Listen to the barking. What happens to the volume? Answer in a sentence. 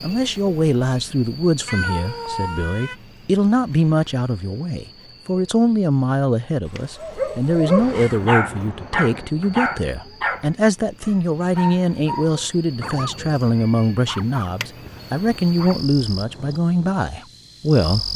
The loudness of the barking goes down.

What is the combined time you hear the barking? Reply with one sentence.
The barking can be heard for 10 seconds in total.